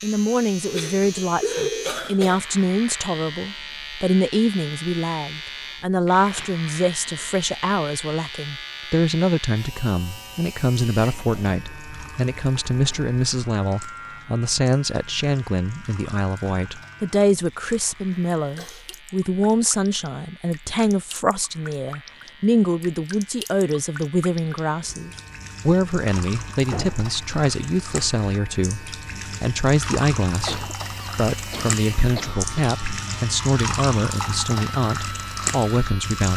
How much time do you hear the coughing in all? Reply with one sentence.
The coughing can be heard for 5 seconds in total.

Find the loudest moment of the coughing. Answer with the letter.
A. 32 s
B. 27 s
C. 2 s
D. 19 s
C.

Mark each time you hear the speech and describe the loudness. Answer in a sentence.
You can hear the speech from 0.0 to 36.3 s, at a steady volume.